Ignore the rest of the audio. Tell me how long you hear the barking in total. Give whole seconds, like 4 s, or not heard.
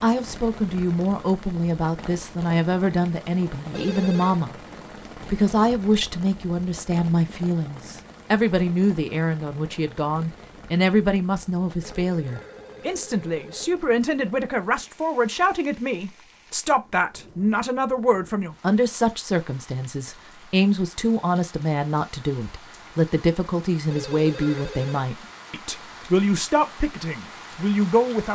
not heard.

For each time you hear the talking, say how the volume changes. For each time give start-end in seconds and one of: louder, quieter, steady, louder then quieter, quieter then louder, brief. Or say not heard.
0.0-4.5 steady
5.2-28.3 steady.